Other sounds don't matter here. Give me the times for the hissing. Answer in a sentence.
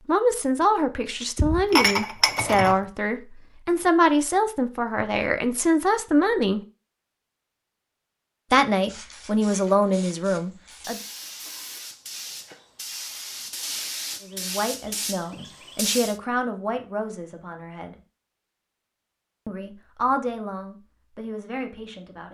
The hissing can be heard from 8.8 to 16.2 s.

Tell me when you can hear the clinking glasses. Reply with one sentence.
You can hear the clinking glasses from 1.4 to 2.8 s.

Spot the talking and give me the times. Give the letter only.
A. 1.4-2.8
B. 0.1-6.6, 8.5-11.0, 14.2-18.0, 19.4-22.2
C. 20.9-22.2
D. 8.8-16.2
B.